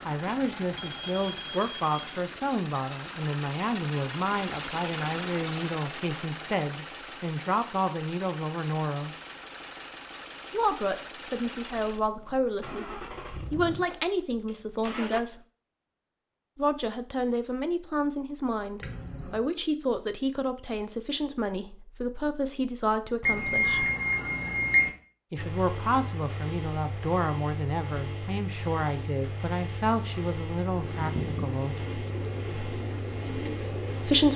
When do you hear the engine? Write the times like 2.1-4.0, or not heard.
0.0-15.2, 25.4-34.3.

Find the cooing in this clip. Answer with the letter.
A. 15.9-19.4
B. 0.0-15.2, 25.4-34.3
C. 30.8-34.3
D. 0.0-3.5
C.